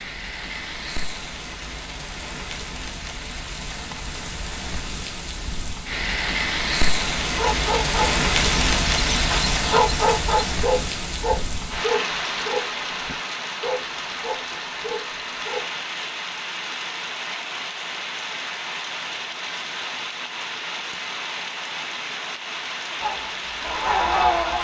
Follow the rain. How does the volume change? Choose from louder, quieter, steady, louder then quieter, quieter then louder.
louder then quieter.